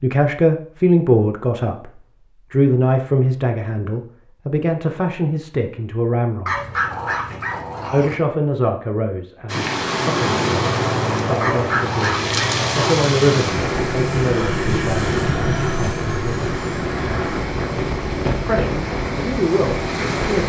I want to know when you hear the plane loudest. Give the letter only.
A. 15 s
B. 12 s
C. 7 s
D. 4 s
A.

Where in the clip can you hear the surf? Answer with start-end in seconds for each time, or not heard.
9.4-20.4.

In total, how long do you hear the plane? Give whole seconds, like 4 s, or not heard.
7 s.